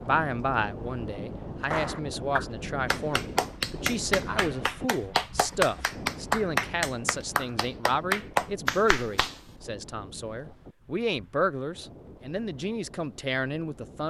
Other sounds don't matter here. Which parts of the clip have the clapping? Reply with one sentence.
The clapping can be heard from 1.6 to 9.4 s.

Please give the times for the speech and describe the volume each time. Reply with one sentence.
You can hear the speech from 0.0 to 14.0 s, at a steady volume.